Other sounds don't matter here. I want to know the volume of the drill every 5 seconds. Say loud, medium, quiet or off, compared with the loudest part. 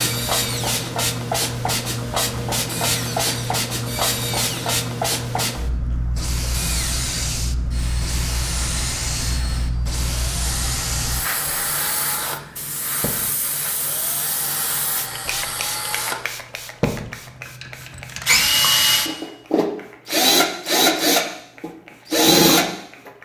quiet, quiet, quiet, medium, loud.